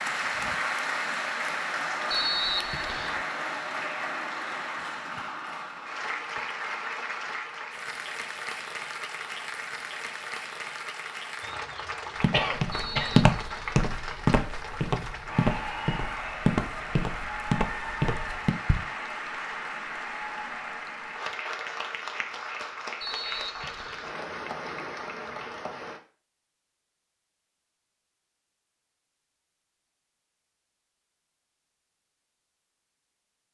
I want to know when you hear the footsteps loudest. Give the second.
13 s.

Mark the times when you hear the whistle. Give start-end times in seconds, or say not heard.
2.1-3.2, 12.7-13.8, 23.0-24.1.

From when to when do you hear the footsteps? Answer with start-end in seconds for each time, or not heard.
12.2-18.9.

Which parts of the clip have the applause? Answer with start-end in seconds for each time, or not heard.
0.0-26.0.